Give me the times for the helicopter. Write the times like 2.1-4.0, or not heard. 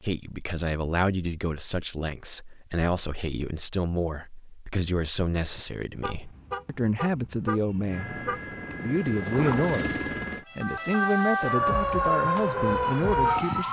7.9-10.4.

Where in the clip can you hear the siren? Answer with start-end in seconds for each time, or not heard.
10.4-13.6.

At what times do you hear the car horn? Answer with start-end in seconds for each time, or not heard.
5.9-8.5.